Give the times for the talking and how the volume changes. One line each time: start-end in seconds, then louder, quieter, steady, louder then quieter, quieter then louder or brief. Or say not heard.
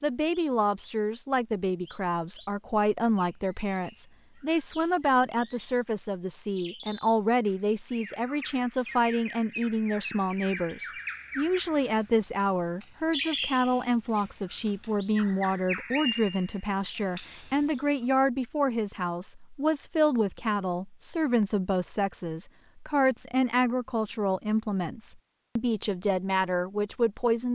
0.0-27.5 steady.